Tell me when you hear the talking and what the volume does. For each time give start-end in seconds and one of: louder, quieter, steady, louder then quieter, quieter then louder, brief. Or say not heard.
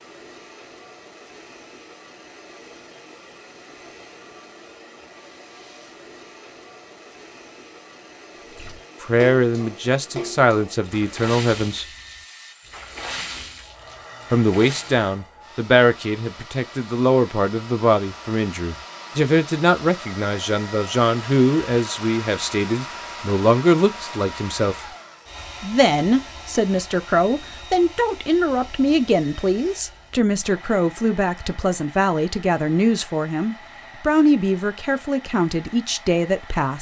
9.0-11.8 brief
14.3-24.9 steady
25.6-36.7 steady.